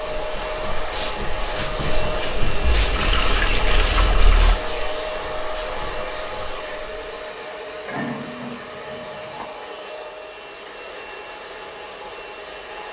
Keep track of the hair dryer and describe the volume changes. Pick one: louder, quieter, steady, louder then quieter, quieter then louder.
quieter.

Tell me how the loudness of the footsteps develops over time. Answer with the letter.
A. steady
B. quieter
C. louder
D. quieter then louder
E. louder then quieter
B.